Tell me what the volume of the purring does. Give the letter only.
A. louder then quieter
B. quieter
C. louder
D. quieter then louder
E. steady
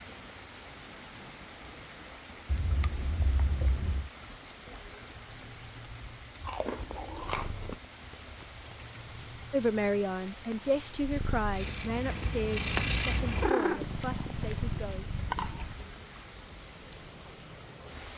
C.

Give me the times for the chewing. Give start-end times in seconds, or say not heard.
2.5-4.1, 6.5-7.8, 13.8-15.8.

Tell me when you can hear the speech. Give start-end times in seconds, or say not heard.
9.5-15.2.